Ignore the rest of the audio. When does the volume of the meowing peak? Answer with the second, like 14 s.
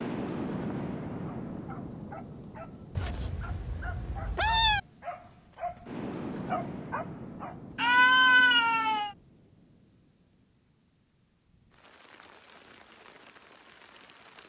8 s.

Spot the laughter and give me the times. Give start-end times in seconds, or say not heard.
not heard.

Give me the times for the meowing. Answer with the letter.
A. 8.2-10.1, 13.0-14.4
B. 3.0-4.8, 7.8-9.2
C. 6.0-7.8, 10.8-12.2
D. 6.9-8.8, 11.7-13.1
B.